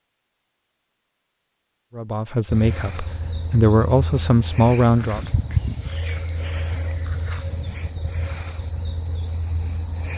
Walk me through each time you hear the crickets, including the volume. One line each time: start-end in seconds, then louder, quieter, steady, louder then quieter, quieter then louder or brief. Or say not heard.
2.5-10.1 steady.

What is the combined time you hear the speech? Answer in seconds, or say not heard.
3 s.